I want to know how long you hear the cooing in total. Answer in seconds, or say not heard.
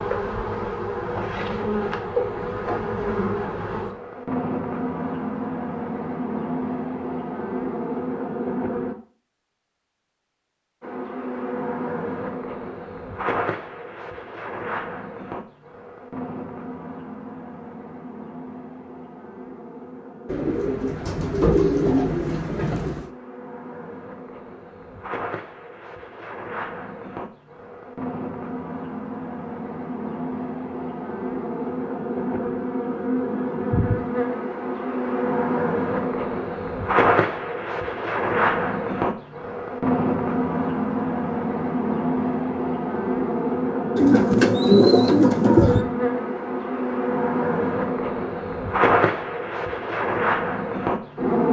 5 s.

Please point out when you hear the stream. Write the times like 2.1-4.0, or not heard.
not heard.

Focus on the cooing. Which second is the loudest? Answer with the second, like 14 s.
45 s.